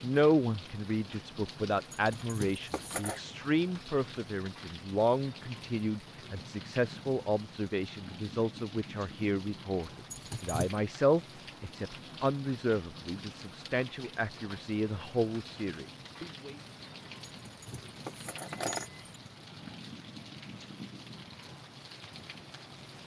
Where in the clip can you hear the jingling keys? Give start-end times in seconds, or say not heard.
1.9-3.2, 10.1-10.8, 17.2-19.1.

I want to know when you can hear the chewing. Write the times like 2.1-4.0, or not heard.
not heard.